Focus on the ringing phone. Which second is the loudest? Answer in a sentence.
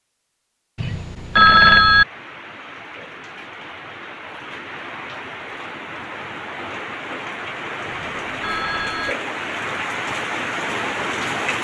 The loudest moment of the ringing phone is at 2 seconds.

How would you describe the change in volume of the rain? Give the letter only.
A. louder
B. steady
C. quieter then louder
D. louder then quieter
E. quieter
A.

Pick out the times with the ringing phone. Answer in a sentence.
The ringing phone can be heard from 0.8 to 2.0 s and from 7.8 to 9.2 s.